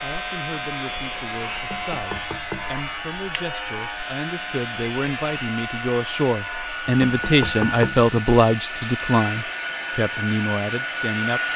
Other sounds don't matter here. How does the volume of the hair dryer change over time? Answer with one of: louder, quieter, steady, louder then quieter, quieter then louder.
louder.